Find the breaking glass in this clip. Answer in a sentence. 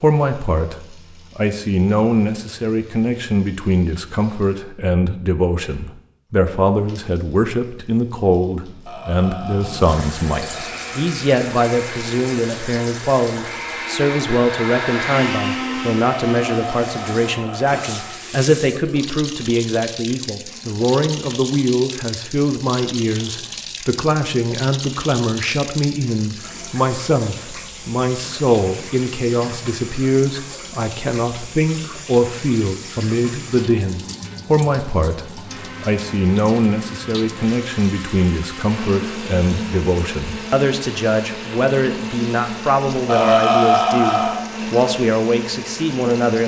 You can't hear the breaking glass here.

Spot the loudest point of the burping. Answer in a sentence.
The loudest moment of the burping is at 44 seconds.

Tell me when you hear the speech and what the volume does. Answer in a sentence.
The speech can be heard from 0.0 to 46.4 s, at a steady volume.